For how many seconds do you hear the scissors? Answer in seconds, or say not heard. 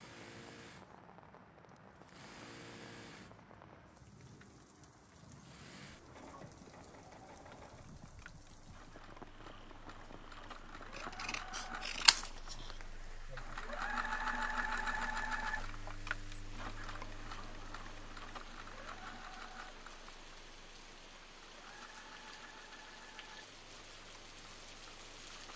2 s.